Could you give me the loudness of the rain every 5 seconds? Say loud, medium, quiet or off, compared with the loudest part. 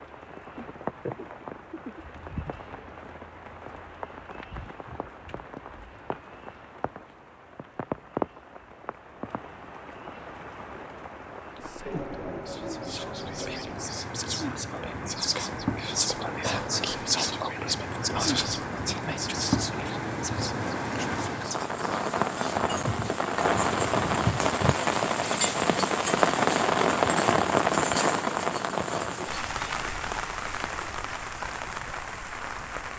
quiet, quiet, quiet, medium, loud, loud, medium.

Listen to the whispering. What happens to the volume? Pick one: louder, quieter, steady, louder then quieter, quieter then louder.
louder then quieter.